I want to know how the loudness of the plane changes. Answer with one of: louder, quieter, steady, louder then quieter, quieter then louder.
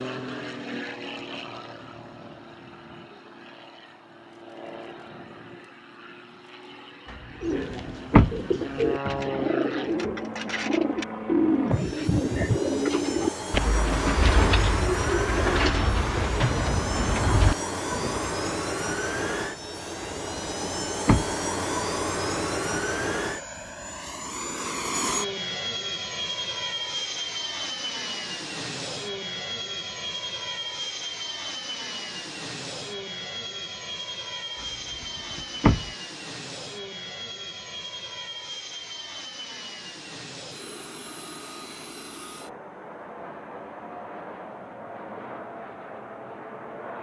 louder then quieter.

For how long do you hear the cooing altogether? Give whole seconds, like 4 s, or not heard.
11 s.